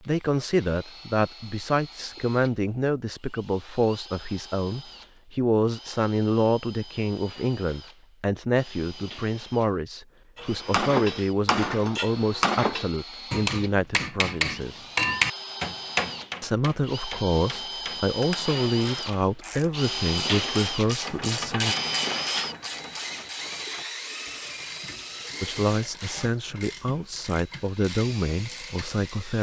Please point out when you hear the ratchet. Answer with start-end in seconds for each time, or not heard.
18.2-29.1.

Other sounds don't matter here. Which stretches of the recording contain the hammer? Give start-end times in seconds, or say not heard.
10.3-18.1.